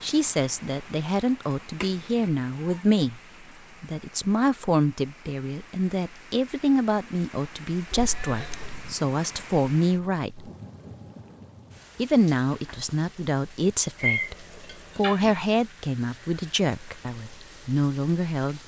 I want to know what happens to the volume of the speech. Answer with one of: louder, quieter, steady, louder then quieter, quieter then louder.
steady.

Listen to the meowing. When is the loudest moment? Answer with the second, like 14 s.
14 s.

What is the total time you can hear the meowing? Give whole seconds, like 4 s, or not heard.
3 s.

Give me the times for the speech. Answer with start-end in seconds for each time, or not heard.
0.0-3.2, 3.8-10.5, 11.9-18.6.